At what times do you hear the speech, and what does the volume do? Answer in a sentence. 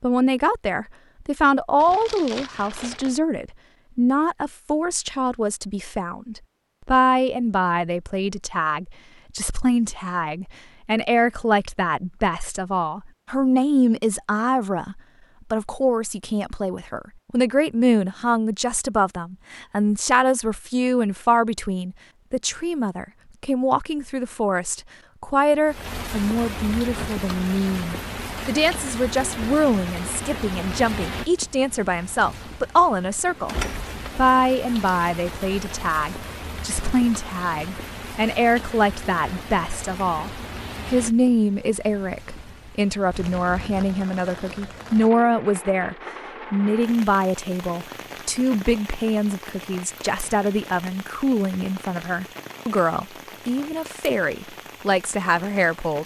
You can hear the speech from 0.0 to 33.5 s, at a steady volume; and from 34.1 to 56.0 s, at a steady volume.